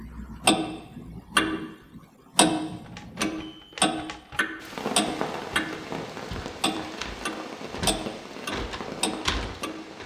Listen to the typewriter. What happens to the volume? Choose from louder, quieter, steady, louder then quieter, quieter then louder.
louder.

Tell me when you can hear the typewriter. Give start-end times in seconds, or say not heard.
2.7-10.0.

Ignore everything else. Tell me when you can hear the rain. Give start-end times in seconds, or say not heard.
4.5-10.0.